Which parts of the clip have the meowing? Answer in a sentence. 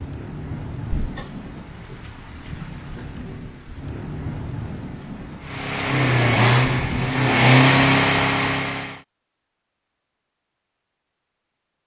You can hear the meowing from 0.9 to 2.2 s.